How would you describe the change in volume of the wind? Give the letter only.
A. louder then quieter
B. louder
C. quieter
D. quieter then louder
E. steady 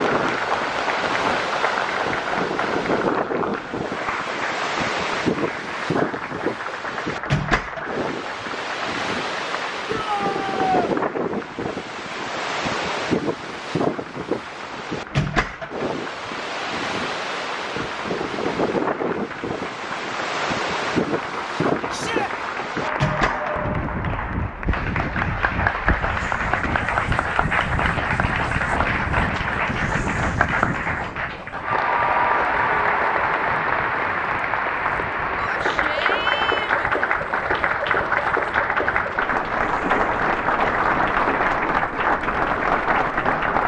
C.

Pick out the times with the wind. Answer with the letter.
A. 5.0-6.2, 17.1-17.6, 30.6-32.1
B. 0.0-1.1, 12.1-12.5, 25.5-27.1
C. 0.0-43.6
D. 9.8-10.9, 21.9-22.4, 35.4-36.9
C.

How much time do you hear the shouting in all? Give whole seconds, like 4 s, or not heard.
3 s.